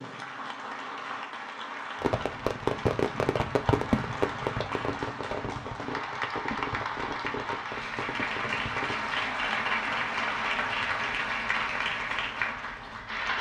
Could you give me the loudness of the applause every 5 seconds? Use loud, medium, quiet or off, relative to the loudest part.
medium, loud, loud.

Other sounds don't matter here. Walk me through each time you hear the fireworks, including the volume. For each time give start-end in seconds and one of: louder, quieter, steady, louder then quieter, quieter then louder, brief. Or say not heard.
2.0-9.1 quieter.